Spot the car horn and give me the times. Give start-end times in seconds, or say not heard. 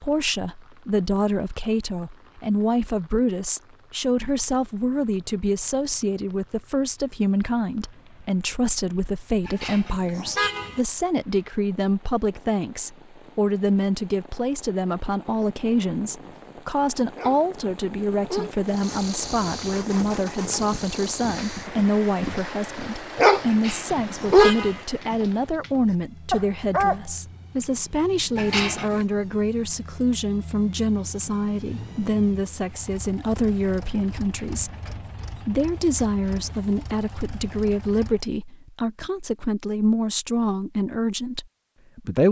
9.4-10.8, 23.4-24.9, 28.4-29.1.